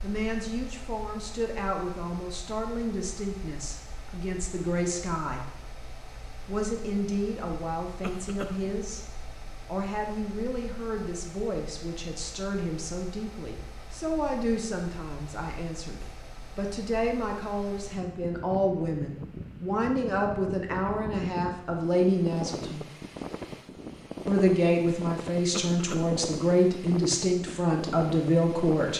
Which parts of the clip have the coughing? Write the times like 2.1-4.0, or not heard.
8.0-8.8, 25.5-26.1.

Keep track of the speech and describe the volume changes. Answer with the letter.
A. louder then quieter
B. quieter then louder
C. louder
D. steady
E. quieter
C.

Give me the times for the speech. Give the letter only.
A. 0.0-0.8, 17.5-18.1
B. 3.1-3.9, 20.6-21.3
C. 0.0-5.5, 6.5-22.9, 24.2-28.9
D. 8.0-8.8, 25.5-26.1
C.